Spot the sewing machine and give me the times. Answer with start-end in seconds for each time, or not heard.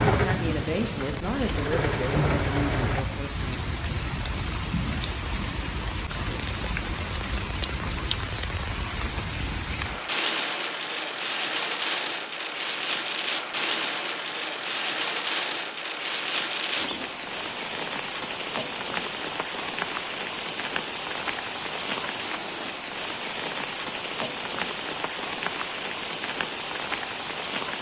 0.0-3.0.